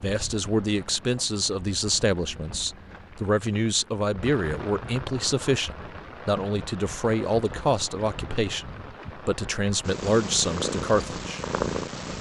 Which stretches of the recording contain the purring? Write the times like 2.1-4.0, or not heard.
9.8-12.1.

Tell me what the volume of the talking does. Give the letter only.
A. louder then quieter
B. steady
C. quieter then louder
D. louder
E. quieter
B.